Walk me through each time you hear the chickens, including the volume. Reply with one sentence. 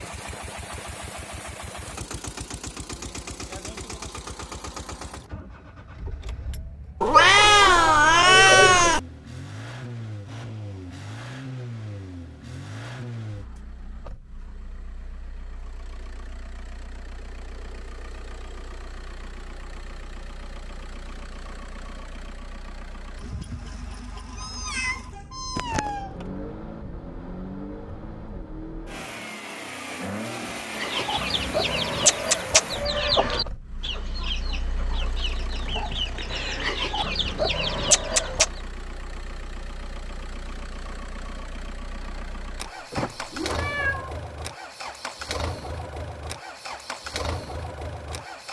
The chickens can be heard from 30.8 to 38.5 s, getting quieter then louder.